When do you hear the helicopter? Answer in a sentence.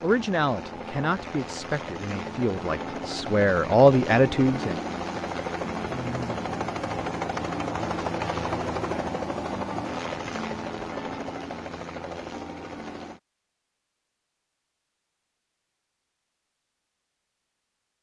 The helicopter can be heard from 0.0 to 13.2 s.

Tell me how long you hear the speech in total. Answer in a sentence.
The speech can be heard for 5 seconds in total.